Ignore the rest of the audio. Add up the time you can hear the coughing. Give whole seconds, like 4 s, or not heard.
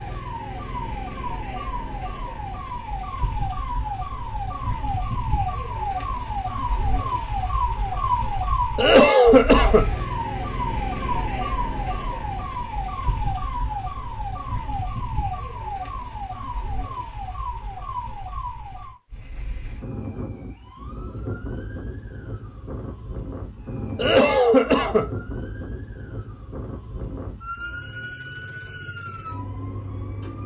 2 s.